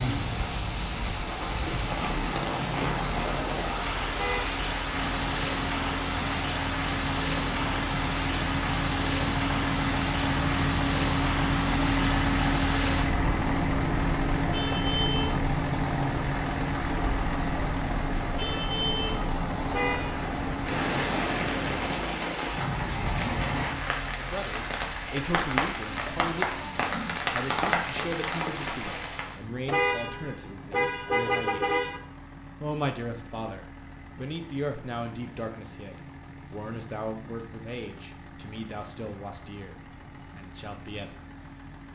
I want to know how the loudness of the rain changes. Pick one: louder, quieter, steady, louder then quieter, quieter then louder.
steady.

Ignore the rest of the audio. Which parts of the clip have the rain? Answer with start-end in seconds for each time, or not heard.
0.0-29.4.